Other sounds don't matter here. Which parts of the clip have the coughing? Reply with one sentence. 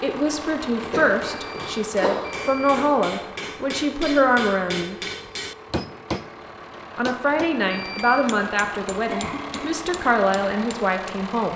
The coughing can be heard from 0.9 to 3.0 s and from 9.1 to 9.8 s.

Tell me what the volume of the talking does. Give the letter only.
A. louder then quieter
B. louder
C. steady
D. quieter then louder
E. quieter
C.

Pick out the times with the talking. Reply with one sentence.
The talking can be heard from 0.0 to 5.0 s and from 7.0 to 11.5 s.